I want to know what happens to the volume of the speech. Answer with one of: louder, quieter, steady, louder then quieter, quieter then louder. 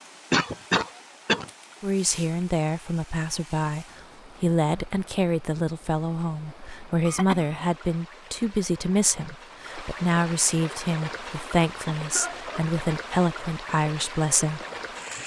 steady.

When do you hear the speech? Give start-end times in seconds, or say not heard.
1.8-14.6.